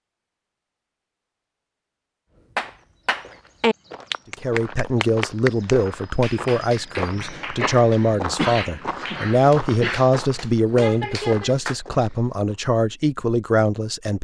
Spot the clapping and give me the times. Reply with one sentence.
The clapping can be heard from 2.5 to 11.8 s.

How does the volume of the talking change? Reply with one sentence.
The loudness of the talking stays about the same.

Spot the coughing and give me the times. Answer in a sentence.
The coughing can be heard from 7.2 to 10.1 s.